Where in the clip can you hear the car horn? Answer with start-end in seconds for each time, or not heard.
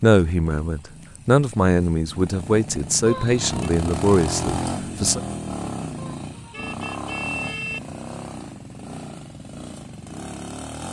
3.0-3.7, 6.0-7.8.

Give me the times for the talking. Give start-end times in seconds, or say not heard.
0.0-5.2.